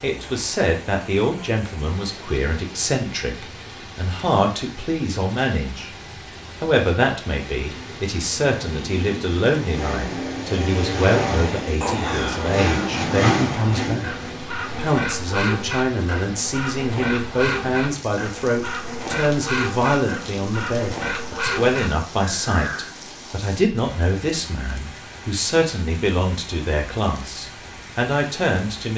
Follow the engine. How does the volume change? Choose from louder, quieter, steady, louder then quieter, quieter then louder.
louder.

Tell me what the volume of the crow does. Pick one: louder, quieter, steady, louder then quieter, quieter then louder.
steady.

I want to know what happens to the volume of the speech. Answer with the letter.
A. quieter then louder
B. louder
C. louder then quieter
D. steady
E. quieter
D.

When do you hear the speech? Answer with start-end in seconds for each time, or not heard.
0.0-6.0, 6.6-28.9.